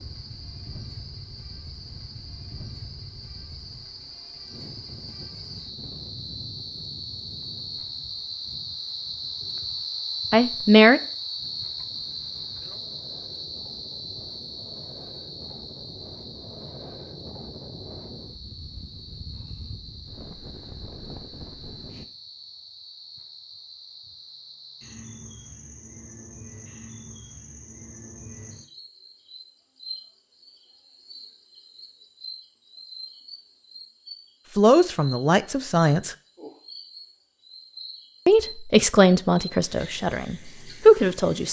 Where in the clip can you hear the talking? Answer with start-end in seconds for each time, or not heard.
10.3-11.0, 34.5-36.1, 38.2-41.4.